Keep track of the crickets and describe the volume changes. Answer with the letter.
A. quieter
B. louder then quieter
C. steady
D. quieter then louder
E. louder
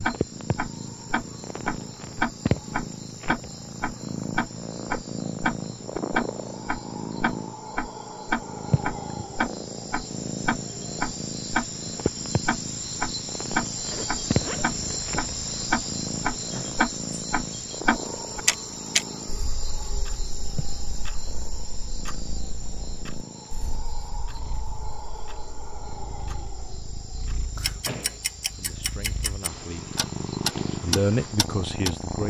B.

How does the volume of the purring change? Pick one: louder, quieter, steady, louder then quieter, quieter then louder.
quieter then louder.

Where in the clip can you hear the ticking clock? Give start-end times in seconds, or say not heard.
0.0-32.2.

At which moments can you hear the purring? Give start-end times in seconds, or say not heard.
0.0-32.2.